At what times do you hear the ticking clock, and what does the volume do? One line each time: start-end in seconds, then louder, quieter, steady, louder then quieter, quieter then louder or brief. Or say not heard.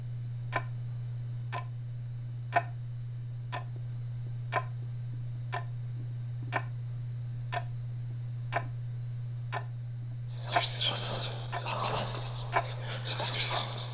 0.0-13.8 steady.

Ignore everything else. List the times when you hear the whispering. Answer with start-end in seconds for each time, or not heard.
10.3-13.8.